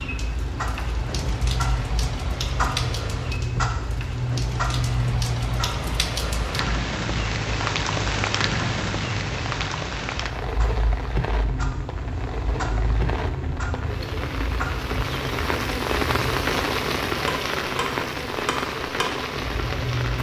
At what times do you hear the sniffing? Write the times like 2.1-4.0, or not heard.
not heard.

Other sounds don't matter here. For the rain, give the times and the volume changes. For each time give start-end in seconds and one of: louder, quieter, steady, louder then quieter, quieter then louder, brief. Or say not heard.
0.0-20.1 louder.